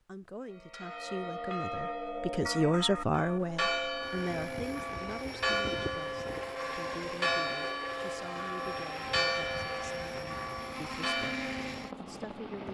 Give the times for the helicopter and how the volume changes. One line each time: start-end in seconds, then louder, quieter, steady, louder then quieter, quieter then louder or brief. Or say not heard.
4.0-12.6 steady.